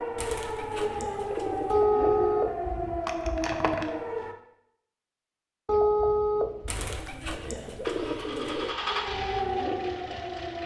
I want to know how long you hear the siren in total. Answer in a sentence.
The siren can be heard for 6 seconds in total.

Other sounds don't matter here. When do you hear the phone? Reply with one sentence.
The phone can be heard from 1.7 to 3.5 s and from 5.7 to 7.3 s.